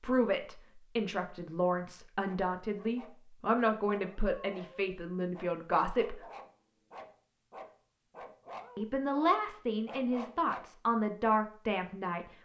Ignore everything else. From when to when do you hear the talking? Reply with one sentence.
The talking can be heard from 0.0 to 6.2 s and from 8.8 to 12.4 s.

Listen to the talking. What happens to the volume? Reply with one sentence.
The volume of the talking stays about the same.